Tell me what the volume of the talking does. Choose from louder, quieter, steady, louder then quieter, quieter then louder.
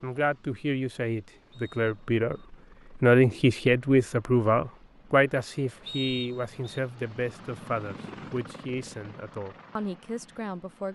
louder then quieter.